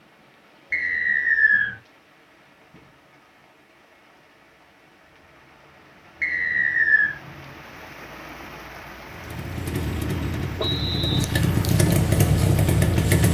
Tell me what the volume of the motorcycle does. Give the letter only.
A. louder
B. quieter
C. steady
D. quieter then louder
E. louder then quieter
A.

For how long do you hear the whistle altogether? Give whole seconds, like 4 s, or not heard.
3 s.